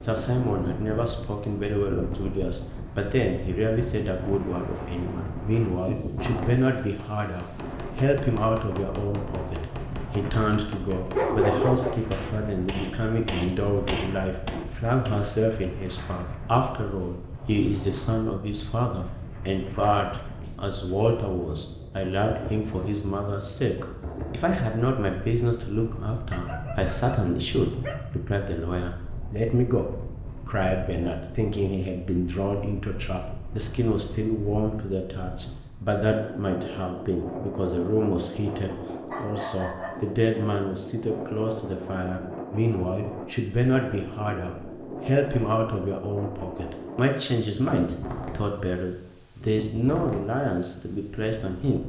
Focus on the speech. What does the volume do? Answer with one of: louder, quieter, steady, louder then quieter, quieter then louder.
steady.